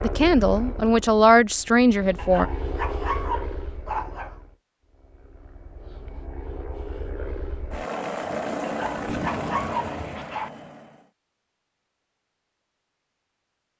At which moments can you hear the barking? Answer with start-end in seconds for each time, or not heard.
2.1-4.3, 8.6-10.5.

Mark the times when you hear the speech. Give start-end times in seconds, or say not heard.
0.0-2.5.